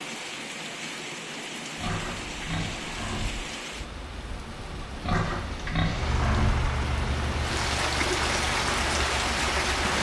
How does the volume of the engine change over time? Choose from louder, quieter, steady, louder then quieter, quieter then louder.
quieter.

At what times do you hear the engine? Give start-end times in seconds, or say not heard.
5.9-9.9.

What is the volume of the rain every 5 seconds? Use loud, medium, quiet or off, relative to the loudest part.
medium, loud.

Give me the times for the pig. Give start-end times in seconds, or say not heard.
1.8-3.3, 5.0-6.5.